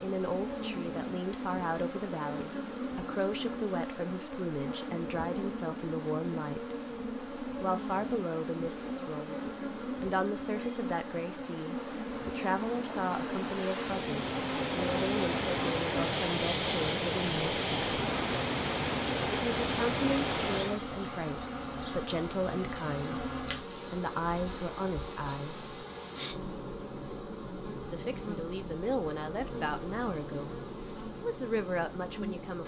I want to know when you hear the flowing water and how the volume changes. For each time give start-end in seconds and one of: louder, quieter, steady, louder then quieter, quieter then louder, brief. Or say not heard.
0.0-20.9 louder.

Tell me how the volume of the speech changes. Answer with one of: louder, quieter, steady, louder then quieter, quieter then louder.
steady.